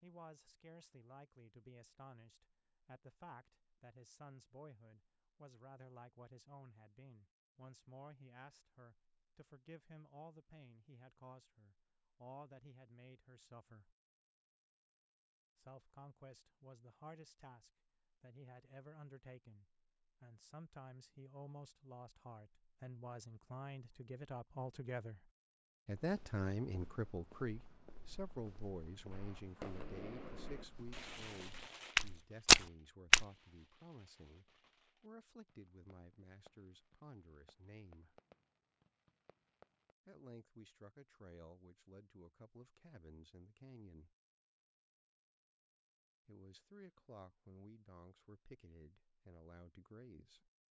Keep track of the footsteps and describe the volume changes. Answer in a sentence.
The volume of the footsteps goes up.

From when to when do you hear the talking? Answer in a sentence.
The talking can be heard from 0.0 to 13.9 s, from 15.6 to 38.2 s, from 40.0 to 44.1 s and from 46.2 to 50.5 s.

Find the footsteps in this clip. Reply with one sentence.
The footsteps can be heard from 25.9 to 33.2 s.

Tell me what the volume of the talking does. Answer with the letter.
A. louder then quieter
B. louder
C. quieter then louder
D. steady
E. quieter
A.